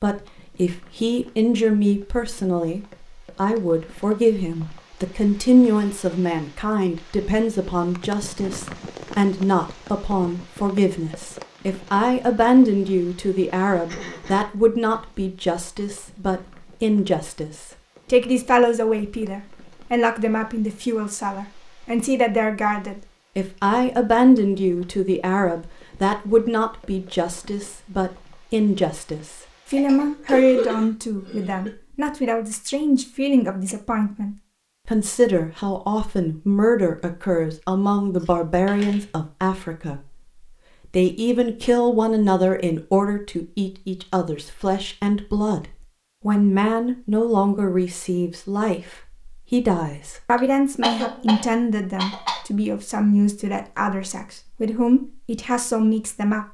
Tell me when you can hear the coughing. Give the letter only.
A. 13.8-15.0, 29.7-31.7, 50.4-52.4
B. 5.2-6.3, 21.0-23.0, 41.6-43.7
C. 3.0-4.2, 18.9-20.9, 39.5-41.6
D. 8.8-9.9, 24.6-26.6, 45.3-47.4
A.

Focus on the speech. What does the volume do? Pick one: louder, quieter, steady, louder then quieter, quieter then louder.
steady.